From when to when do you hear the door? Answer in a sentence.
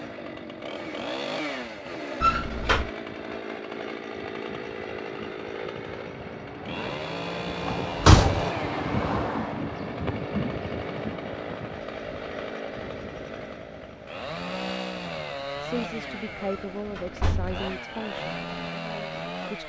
You can hear the door from 2.2 to 2.9 s, from 7.7 to 8.5 s and from 16.4 to 17.6 s.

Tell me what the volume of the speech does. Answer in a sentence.
The volume of the speech goes down.